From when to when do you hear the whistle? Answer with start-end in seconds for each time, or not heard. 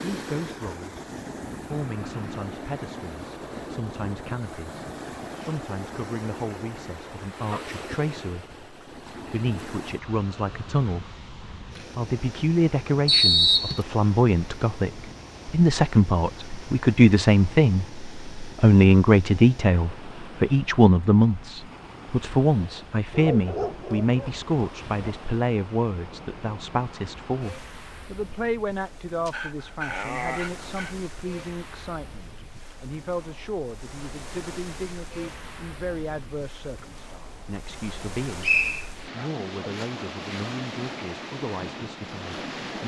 13.1-13.8, 38.4-38.9.